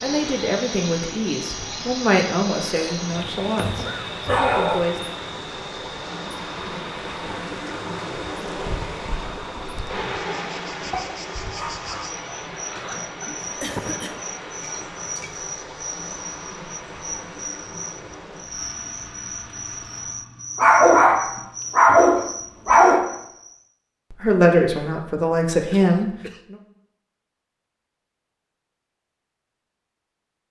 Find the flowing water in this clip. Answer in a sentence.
You can hear the flowing water from 0.0 to 18.4 s.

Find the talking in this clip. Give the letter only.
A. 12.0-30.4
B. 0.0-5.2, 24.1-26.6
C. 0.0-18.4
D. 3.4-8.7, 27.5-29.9
B.